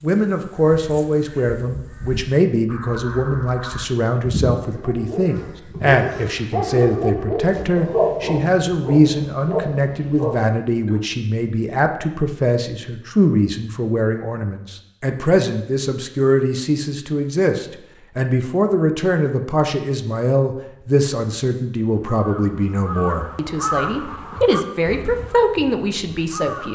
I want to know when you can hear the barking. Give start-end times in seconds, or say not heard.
4.7-11.0.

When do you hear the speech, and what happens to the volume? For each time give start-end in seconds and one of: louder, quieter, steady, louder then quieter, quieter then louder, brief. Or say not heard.
0.0-26.7 steady.